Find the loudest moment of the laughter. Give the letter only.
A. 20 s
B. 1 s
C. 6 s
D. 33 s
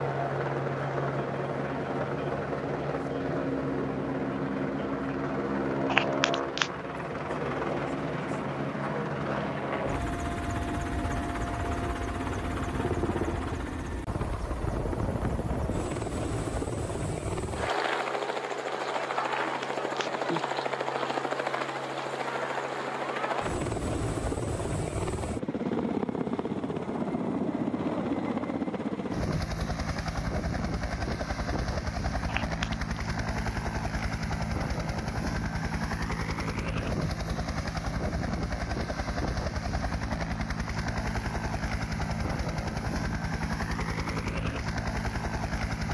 C.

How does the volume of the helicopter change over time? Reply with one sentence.
The volume of the helicopter stays about the same.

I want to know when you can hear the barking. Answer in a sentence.
You can't hear the barking here.